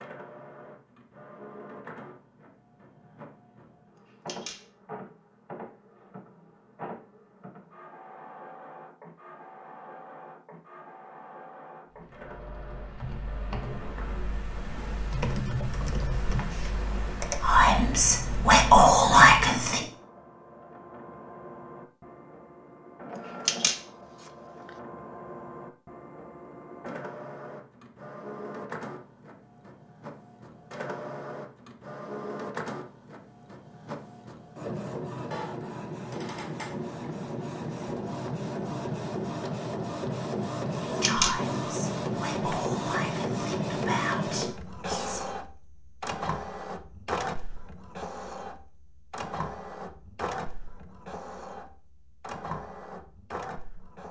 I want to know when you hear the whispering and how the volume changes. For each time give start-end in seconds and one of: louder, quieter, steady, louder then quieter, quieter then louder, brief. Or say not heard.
17.4-19.9 brief
40.8-45.2 steady.